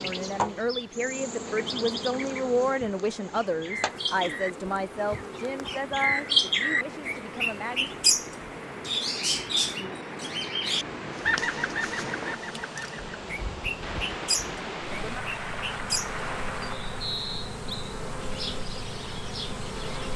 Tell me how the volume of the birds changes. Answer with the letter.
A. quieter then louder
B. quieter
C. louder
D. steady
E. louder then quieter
E.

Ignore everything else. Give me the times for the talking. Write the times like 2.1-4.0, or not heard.
0.0-7.9.